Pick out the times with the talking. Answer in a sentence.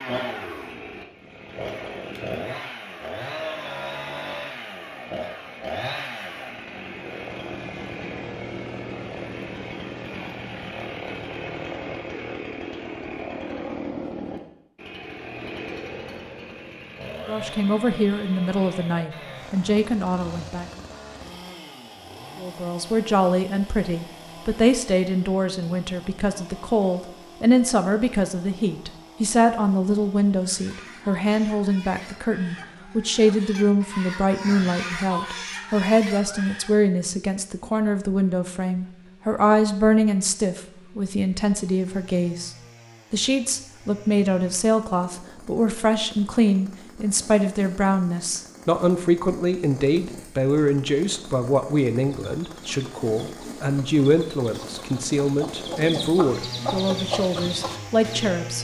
The talking can be heard from 17.2 to 20.6 s, from 22.4 to 42.5 s and from 43.1 to 58.5 s.